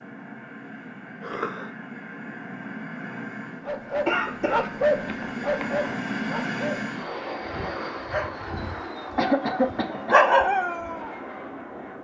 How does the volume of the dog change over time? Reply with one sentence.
The loudness of the dog goes down, then up.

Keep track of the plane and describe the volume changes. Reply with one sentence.
The loudness of the plane goes up, then down.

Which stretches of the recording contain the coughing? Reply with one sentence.
You can hear the coughing from 1.2 to 1.7 s, from 4.0 to 6.0 s and from 9.2 to 10.2 s.